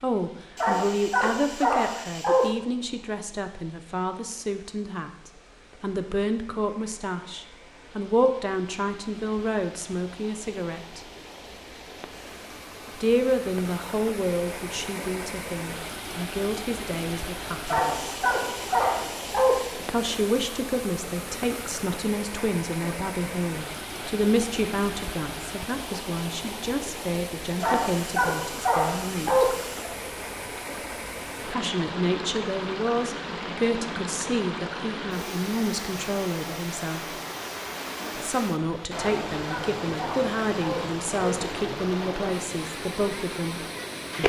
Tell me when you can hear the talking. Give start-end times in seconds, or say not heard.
0.0-11.0, 13.0-18.2, 19.8-29.6, 31.4-37.1, 38.1-44.2.